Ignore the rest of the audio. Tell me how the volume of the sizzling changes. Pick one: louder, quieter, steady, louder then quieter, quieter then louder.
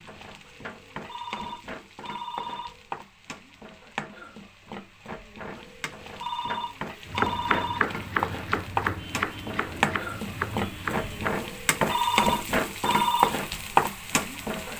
louder.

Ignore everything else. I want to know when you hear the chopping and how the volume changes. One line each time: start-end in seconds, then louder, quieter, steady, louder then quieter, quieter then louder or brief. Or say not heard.
7.0-12.3 quieter then louder.